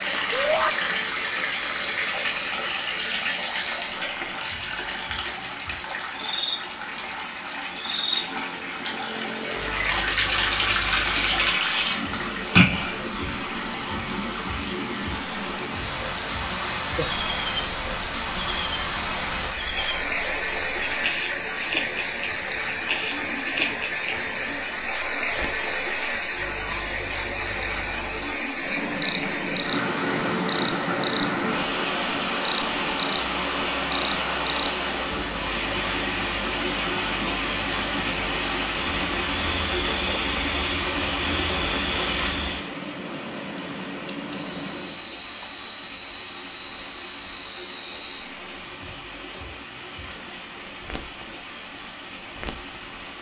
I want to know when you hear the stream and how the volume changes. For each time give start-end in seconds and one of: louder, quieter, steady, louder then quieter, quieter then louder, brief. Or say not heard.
0.0-53.1 quieter.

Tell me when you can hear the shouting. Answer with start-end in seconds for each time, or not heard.
0.3-0.8.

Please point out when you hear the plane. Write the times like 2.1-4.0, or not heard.
28.6-45.0.